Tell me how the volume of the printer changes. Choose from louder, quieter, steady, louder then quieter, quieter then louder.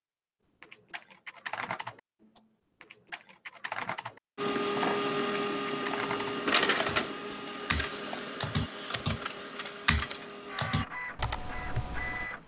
quieter.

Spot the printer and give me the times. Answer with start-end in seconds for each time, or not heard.
4.3-12.4.